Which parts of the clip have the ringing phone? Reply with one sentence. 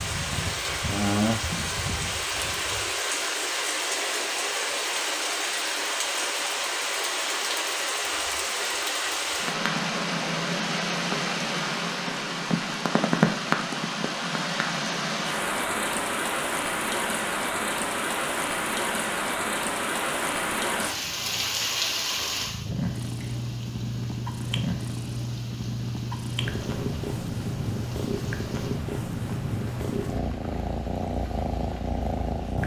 The ringing phone can't be heard in this clip.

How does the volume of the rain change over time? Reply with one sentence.
The volume of the rain goes down.